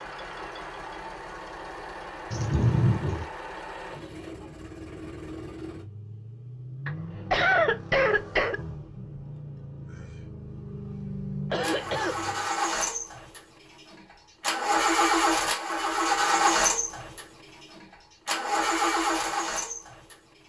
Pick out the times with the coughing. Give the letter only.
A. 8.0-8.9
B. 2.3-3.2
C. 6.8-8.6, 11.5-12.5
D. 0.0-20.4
C.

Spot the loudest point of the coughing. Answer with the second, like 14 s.
7 s.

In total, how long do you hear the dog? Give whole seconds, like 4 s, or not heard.
not heard.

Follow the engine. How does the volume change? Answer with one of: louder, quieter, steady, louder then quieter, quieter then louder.
louder.